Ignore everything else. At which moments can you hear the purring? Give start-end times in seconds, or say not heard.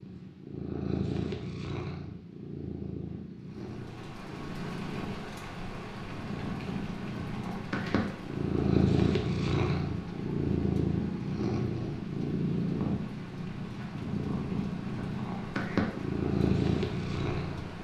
0.0-17.8.